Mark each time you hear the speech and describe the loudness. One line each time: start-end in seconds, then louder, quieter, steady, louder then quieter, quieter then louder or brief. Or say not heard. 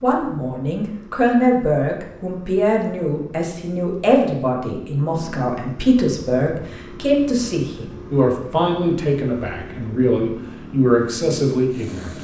0.0-12.1 steady.